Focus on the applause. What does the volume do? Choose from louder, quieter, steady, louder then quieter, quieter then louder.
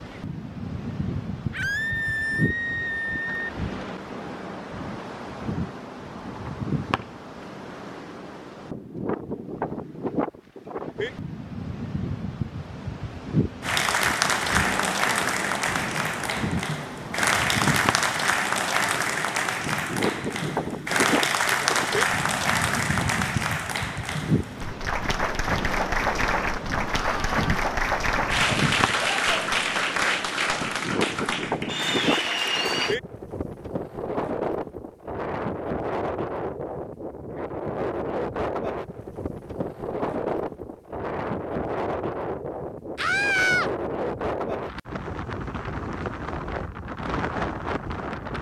steady.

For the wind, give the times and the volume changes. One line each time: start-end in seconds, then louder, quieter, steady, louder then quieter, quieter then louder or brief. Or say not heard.
0.0-48.3 steady.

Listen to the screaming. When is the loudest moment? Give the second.
43 s.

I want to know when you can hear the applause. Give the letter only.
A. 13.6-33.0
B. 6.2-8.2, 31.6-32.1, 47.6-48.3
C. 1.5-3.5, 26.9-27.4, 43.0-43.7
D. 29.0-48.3
A.